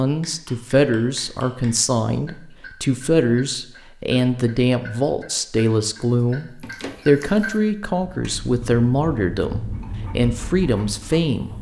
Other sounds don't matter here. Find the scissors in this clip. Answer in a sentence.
The scissors can be heard from 6.2 to 7.0 s.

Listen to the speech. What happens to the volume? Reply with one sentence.
The volume of the speech stays about the same.